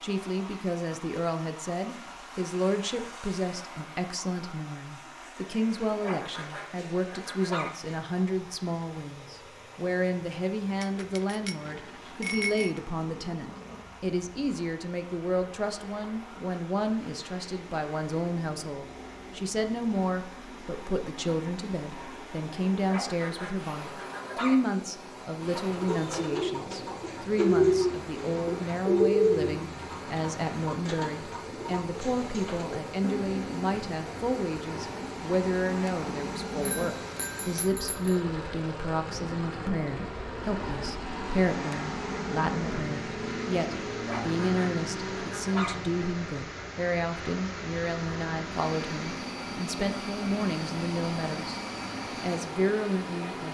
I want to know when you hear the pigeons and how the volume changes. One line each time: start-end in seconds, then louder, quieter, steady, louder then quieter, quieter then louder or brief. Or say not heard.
25.4-33.7 louder then quieter.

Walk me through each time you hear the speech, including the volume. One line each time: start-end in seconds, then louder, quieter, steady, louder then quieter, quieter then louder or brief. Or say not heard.
0.0-51.6 steady
52.2-53.4 brief.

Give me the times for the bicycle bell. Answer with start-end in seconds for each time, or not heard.
10.8-12.7, 36.6-38.2.